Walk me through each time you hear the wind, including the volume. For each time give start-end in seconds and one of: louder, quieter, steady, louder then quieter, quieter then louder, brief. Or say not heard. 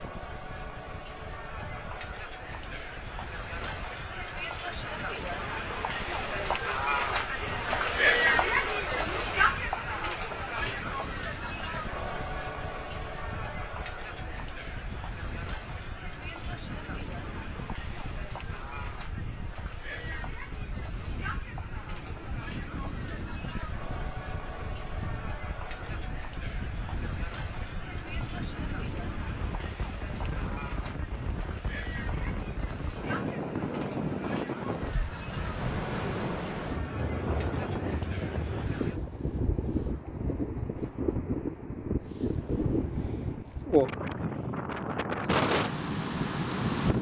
0.0-46.9 louder.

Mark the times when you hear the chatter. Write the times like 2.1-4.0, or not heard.
0.0-39.0.